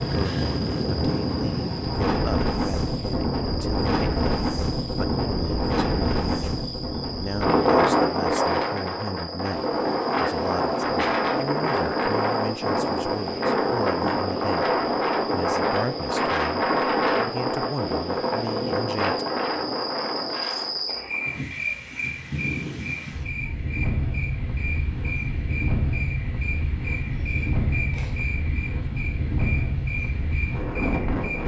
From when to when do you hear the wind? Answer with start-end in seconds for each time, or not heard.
0.0-31.4.